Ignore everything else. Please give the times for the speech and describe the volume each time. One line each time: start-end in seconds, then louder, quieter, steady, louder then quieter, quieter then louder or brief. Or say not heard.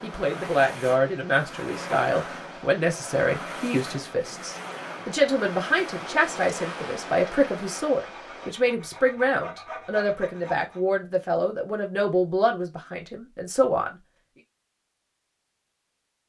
0.0-13.9 steady.